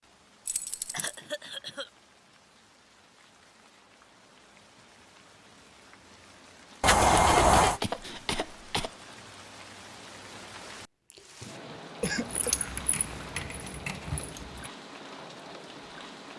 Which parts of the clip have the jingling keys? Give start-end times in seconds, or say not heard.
0.5-1.1, 6.8-7.8, 12.1-14.7.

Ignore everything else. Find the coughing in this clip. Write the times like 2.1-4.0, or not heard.
0.9-1.9, 7.0-8.9, 11.4-12.6.